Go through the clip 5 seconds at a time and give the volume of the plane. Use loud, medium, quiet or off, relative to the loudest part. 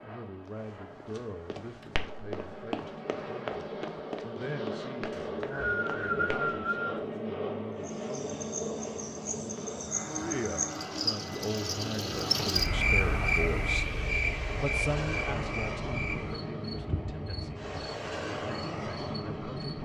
medium, loud, loud, loud.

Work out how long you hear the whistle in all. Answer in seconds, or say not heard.
2 s.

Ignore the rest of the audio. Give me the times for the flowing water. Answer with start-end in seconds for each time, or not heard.
not heard.